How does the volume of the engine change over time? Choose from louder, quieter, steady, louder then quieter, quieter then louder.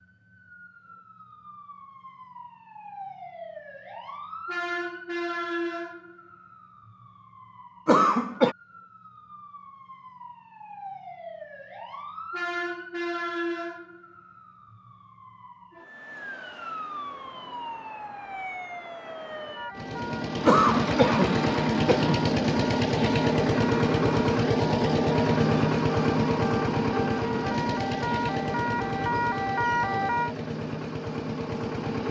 quieter.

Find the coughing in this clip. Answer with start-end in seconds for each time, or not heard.
7.8-8.6, 20.4-22.2.